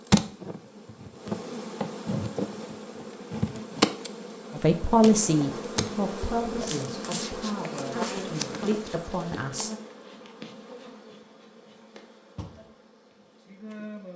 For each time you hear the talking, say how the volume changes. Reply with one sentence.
You can hear the talking from 4.5 to 9.7 s, getting quieter then louder.